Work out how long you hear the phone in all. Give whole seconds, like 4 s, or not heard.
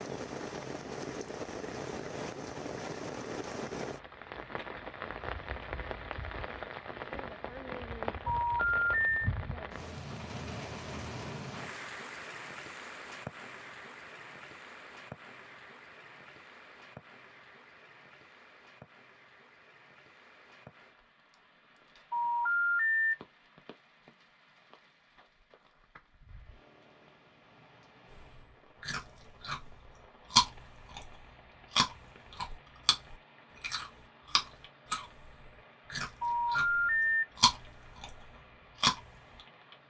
3 s.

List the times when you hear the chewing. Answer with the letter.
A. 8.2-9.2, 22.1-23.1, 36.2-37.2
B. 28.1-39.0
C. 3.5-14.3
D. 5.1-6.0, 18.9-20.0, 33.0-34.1
B.